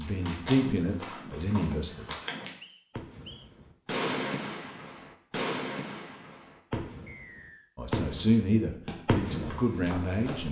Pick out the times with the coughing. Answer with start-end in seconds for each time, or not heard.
not heard.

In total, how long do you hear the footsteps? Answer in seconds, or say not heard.
4 s.